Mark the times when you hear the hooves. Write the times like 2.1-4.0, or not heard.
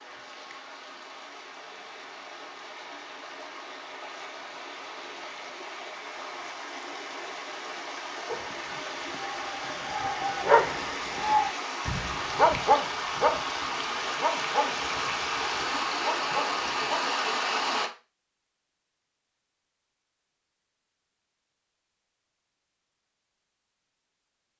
not heard.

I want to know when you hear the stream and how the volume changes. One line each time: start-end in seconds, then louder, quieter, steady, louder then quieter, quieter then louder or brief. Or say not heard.
0.0-17.9 louder.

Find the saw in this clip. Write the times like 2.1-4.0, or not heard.
not heard.